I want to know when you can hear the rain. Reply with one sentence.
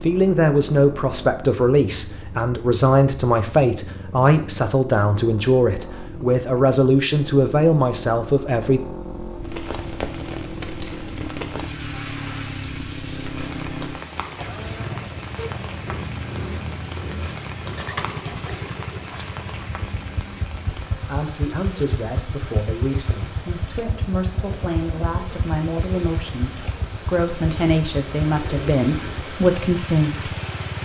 You can hear the rain from 9.4 to 30.8 s.